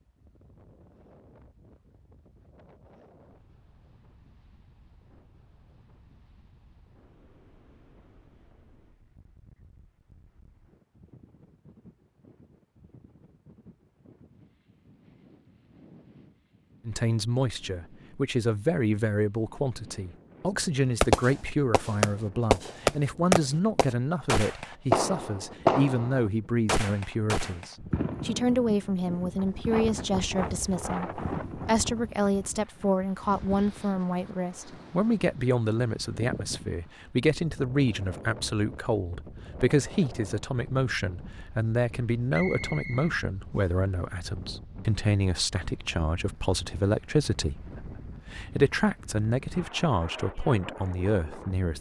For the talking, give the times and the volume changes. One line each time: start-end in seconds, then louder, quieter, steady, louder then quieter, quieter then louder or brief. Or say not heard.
16.9-51.7 steady.